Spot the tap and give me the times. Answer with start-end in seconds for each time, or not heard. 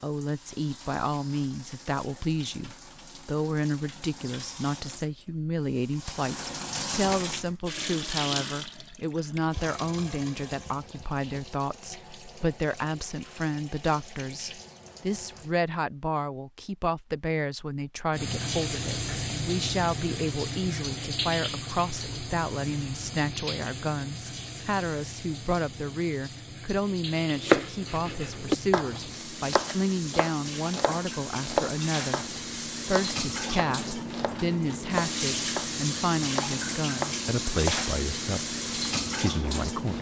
0.0-15.6, 18.1-39.9.